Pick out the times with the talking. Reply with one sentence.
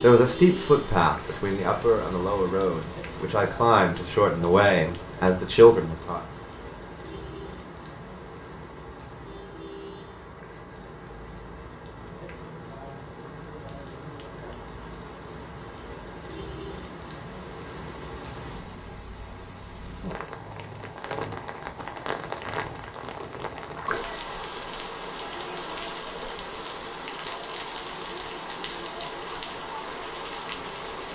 You can hear the talking from 0.0 to 6.2 s.